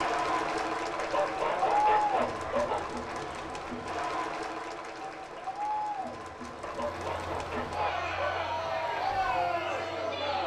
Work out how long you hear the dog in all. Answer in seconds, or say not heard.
4 s.